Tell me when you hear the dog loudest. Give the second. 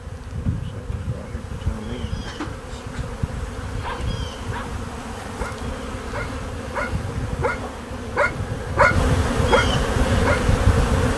9 s.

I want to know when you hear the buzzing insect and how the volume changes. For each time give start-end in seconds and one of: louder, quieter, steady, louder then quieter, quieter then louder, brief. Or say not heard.
0.0-11.1 louder.